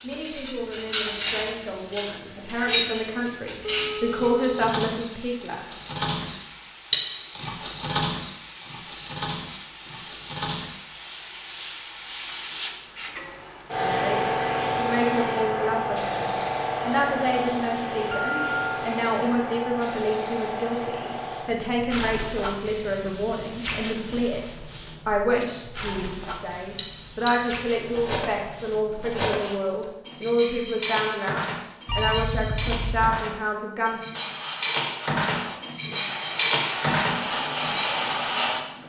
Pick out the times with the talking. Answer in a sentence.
The talking can be heard from 0.0 to 5.7 s and from 13.8 to 34.0 s.